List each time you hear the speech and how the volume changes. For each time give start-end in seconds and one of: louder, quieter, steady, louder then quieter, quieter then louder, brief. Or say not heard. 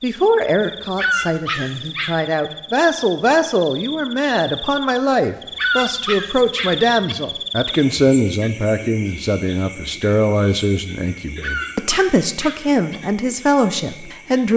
0.0-14.5 steady.